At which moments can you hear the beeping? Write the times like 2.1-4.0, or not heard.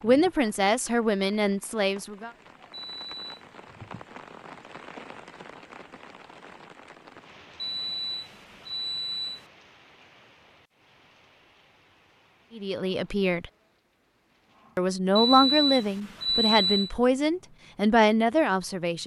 2.7-3.2, 7.5-9.4, 15.2-16.9.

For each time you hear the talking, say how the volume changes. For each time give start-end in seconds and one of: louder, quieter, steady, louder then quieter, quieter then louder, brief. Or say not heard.
0.0-2.3 brief
12.6-13.4 brief
14.8-19.0 quieter then louder.